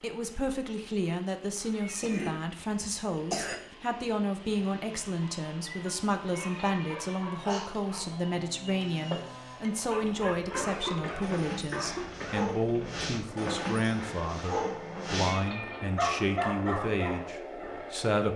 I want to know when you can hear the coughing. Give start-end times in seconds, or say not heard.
1.6-3.5, 10.5-12.5.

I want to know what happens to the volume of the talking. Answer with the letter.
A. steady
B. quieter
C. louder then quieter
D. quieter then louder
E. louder
A.